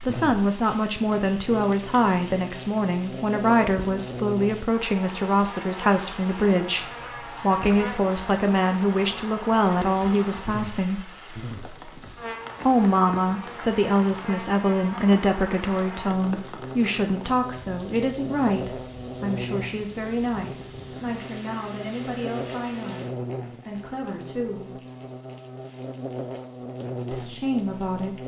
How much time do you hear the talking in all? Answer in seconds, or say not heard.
24 s.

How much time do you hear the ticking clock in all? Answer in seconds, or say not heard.
not heard.